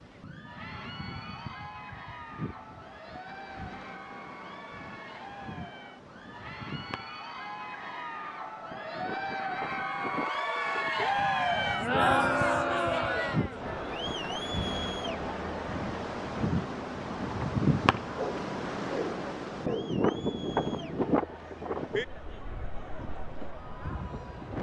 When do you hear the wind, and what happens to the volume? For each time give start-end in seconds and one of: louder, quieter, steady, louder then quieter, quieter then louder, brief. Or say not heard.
0.0-24.5 louder.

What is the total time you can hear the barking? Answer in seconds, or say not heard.
2 s.